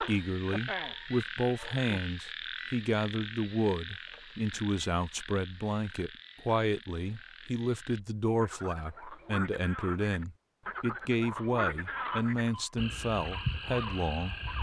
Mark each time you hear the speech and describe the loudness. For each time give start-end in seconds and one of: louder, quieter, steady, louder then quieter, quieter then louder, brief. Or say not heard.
0.0-14.4 steady.